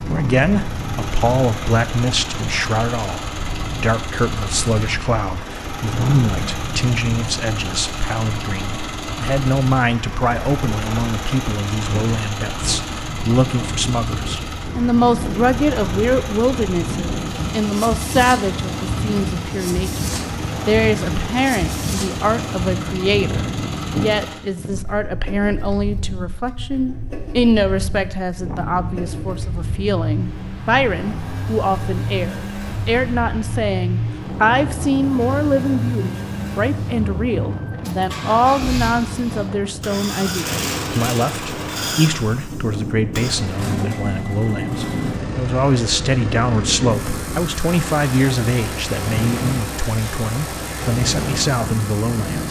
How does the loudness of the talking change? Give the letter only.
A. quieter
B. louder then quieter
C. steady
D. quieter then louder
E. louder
C.